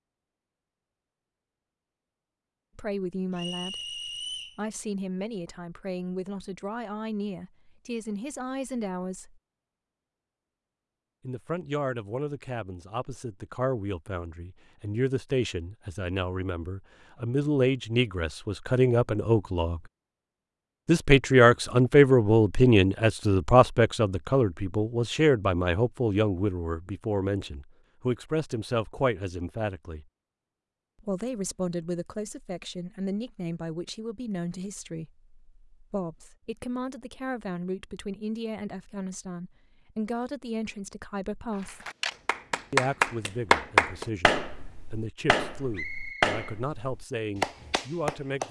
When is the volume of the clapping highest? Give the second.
44 s.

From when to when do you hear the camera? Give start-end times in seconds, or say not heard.
41.5-42.1.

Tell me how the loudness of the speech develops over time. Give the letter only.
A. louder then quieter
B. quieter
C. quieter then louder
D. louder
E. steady
A.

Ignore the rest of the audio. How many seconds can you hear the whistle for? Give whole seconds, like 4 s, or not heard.
2 s.